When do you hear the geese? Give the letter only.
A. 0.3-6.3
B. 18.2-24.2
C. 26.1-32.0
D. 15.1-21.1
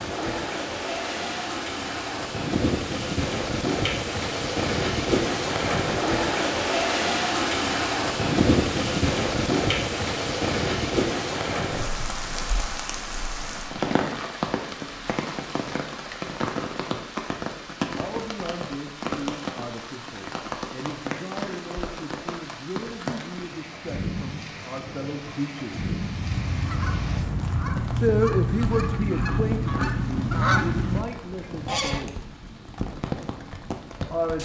C.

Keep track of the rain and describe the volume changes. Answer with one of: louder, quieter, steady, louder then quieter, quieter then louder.
quieter.